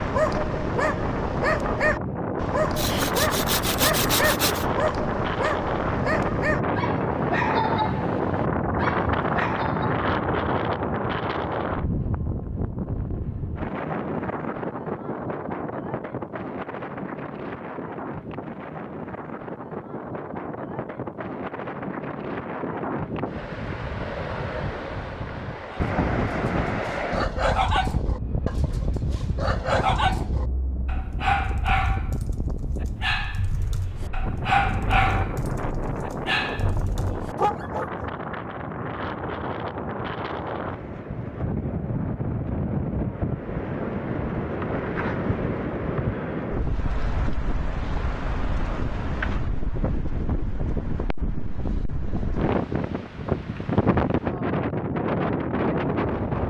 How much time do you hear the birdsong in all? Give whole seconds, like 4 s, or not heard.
not heard.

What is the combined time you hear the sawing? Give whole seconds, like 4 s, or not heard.
2 s.